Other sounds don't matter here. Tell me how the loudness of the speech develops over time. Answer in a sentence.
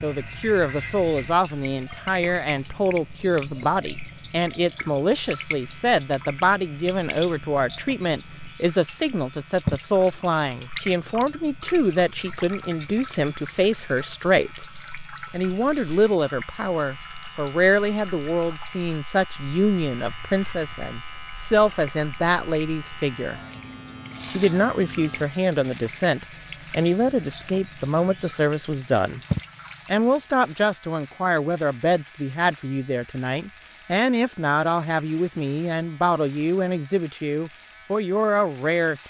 The loudness of the speech stays about the same.